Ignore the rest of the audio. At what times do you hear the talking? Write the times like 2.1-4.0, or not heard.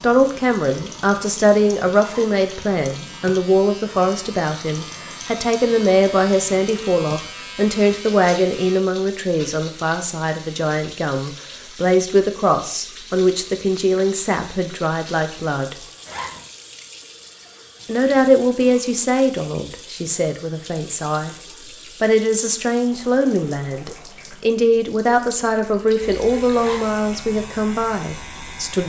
0.0-15.8, 17.9-21.4, 22.0-28.8.